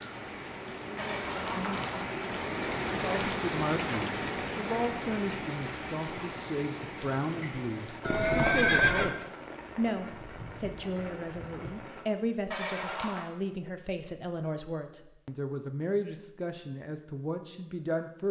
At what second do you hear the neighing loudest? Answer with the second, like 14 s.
9 s.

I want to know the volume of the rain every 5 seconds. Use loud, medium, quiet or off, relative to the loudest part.
loud, medium, medium, off.